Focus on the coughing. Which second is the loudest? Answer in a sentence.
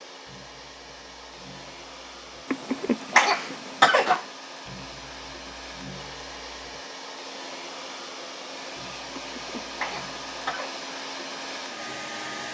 The loudest moment of the coughing is at 4 seconds.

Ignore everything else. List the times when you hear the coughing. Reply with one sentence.
The coughing can be heard from 2.5 to 4.2 s and from 9.2 to 10.8 s.